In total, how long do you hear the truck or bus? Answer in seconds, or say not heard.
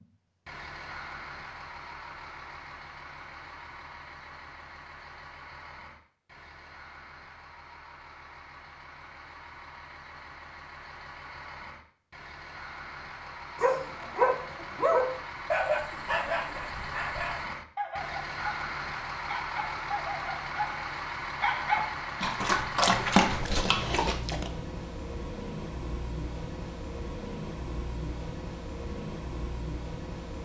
30 s.